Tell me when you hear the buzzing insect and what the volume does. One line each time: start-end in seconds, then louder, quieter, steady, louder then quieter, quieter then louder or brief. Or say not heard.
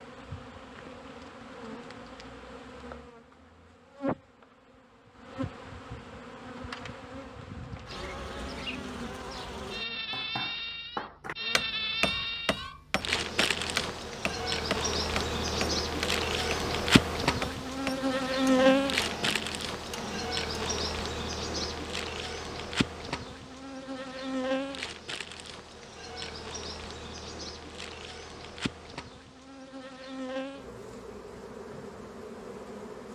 0.0-33.1 louder then quieter.